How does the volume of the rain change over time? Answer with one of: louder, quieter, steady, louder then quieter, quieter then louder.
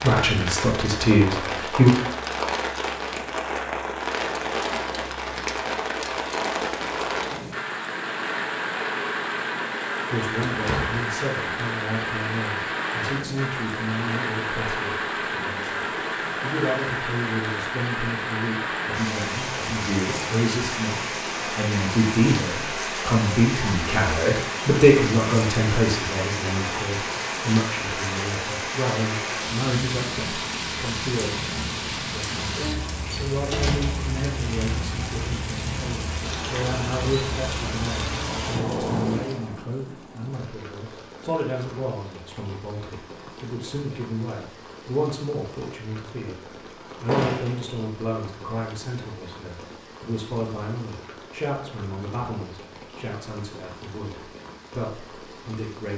quieter.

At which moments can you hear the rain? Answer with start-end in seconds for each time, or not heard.
0.0-55.9.